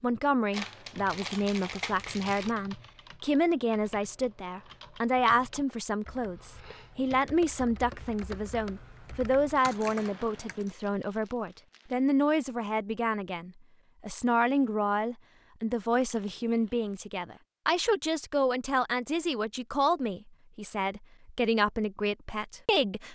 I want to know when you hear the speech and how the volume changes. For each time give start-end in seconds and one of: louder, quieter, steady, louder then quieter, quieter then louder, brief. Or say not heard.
0.0-23.0 steady.